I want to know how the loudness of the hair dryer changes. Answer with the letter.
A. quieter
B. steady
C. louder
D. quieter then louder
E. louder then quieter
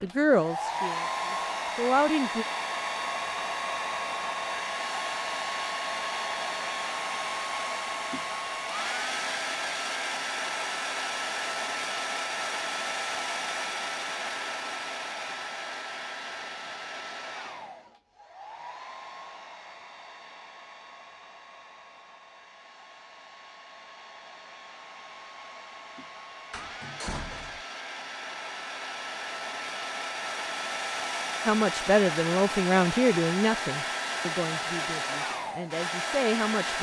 D.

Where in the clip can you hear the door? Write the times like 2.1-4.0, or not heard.
26.5-27.6.